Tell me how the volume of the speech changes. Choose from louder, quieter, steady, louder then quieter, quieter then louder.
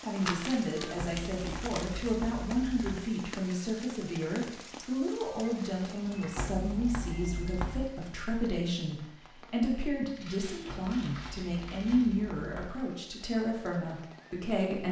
steady.